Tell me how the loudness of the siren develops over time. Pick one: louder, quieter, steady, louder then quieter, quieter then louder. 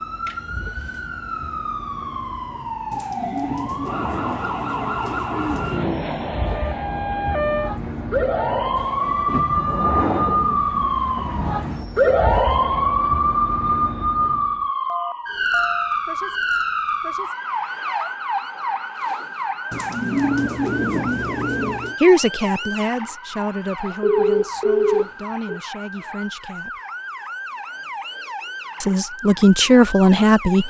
louder then quieter.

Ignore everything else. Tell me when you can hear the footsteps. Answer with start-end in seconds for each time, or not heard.
not heard.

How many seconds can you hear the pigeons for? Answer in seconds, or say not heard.
5 s.